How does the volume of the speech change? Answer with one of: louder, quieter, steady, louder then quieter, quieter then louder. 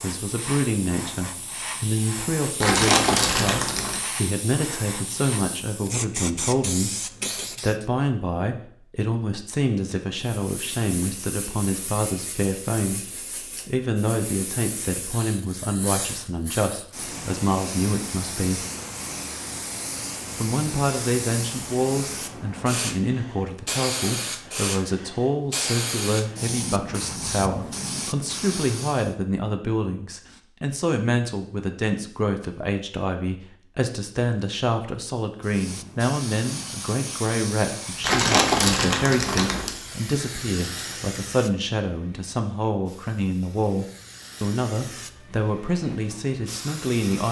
steady.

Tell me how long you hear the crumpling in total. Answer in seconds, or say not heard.
3 s.